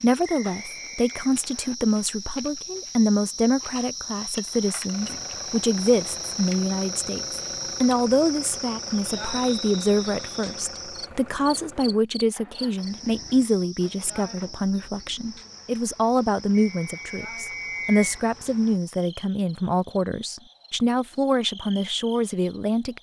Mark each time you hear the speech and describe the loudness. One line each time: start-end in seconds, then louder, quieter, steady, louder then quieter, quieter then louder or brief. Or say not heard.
0.0-22.9 steady.